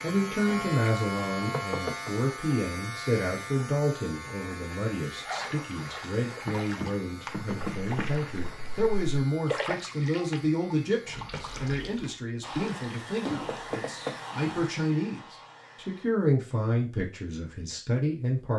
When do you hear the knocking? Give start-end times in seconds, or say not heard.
1.5-2.1, 6.5-8.1, 13.4-14.2.